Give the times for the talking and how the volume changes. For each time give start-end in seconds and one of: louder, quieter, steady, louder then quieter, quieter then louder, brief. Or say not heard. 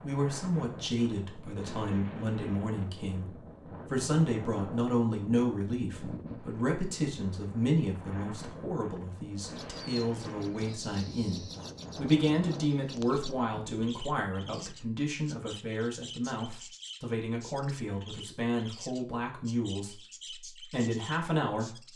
0.0-21.9 steady.